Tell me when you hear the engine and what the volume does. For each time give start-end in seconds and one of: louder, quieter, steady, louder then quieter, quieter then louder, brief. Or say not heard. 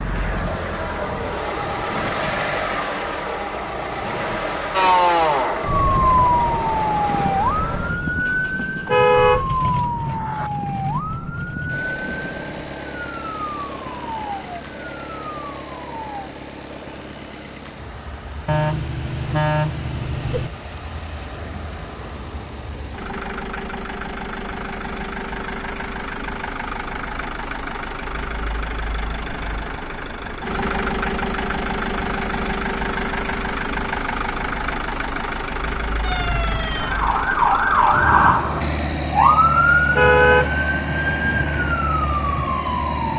0.0-43.1 quieter then louder.